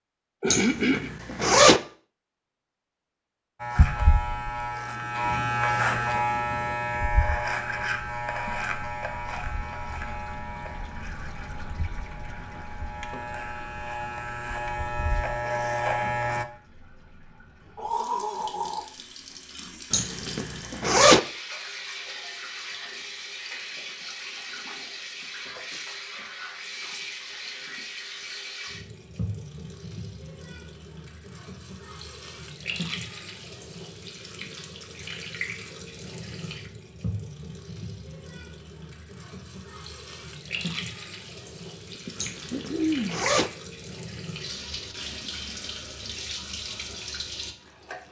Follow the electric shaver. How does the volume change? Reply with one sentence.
The volume of the electric shaver goes down, then up.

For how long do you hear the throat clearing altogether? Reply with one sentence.
You can hear the throat clearing for 3 seconds altogether.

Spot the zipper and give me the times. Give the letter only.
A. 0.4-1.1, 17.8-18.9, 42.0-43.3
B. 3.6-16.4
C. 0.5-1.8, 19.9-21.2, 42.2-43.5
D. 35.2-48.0
C.